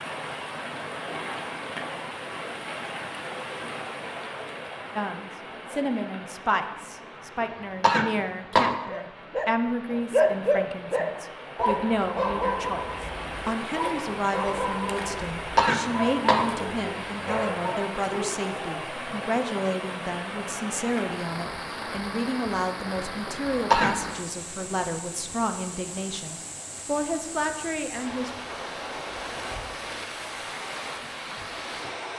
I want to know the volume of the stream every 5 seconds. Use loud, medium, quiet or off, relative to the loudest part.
loud, medium, loud, loud, loud, loud, loud.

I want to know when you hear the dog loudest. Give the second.
10 s.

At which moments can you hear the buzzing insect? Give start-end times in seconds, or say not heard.
not heard.